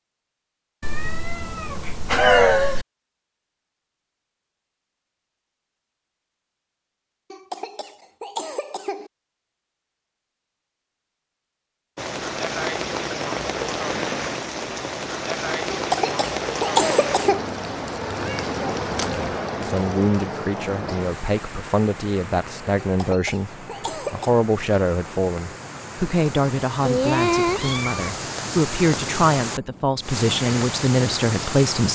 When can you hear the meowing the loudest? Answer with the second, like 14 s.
2 s.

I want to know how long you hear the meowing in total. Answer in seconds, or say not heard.
5 s.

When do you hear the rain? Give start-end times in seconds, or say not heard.
11.9-31.9.